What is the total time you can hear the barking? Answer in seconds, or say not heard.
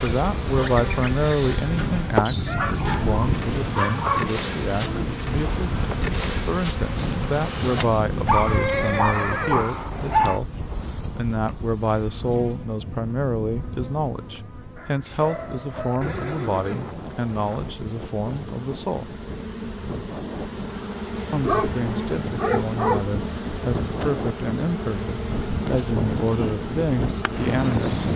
7 s.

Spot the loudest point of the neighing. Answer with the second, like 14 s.
9 s.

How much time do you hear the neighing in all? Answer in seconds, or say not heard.
3 s.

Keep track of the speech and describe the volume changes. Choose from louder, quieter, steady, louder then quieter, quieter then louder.
steady.